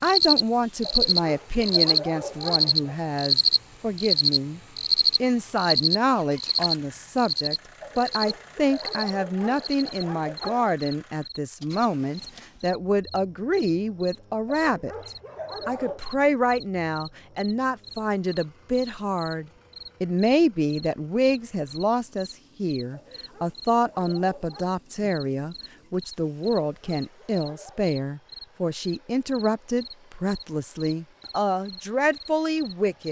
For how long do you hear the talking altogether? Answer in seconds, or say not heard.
32 s.